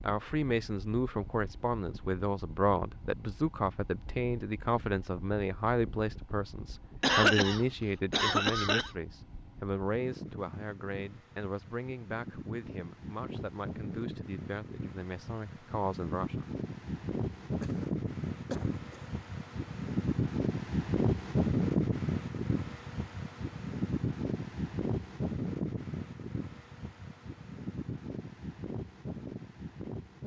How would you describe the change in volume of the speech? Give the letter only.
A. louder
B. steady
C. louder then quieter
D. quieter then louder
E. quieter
E.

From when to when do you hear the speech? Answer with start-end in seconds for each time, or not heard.
0.0-16.4.